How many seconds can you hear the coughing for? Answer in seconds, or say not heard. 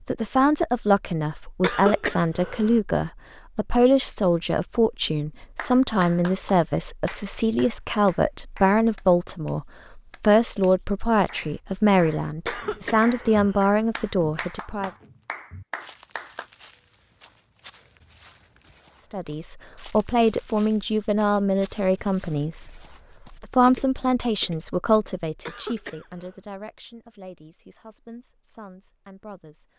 3 s.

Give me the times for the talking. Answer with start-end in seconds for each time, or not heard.
0.1-14.9, 19.1-29.7.